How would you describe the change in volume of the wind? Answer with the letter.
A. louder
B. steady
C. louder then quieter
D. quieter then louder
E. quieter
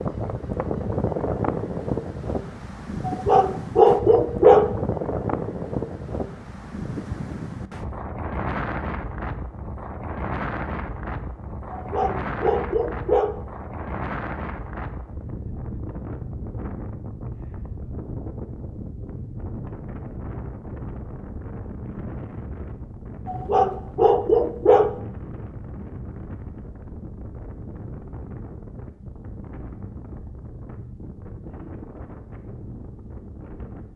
E.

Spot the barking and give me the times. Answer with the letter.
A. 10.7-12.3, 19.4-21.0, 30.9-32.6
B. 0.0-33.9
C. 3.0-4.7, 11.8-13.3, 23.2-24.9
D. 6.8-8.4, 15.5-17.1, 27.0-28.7
C.